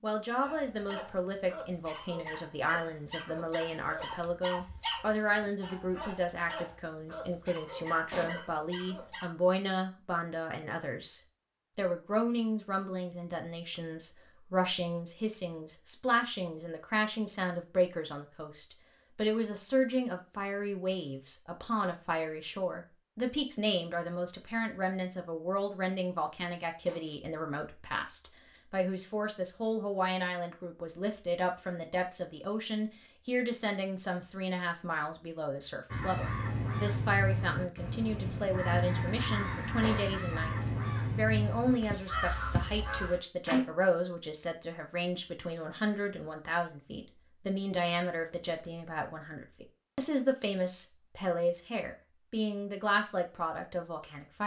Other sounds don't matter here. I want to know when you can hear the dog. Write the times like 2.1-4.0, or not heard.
0.5-9.3.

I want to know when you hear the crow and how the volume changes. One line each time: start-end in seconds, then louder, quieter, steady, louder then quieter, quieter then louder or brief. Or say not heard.
35.9-43.6 steady.